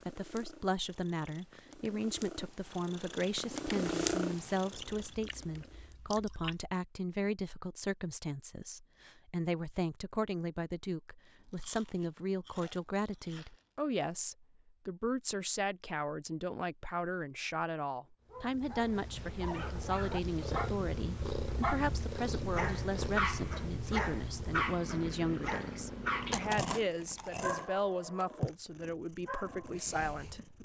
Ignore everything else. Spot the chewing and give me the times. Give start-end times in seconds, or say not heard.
4.7-6.7, 11.4-13.6, 26.2-27.7.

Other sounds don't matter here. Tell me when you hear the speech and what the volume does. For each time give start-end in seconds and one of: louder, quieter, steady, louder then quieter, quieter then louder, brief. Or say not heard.
0.1-30.5 steady.